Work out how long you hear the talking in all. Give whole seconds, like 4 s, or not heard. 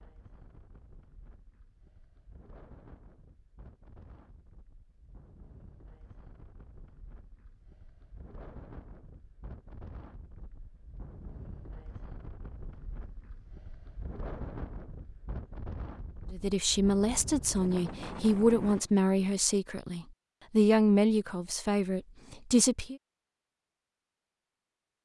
7 s.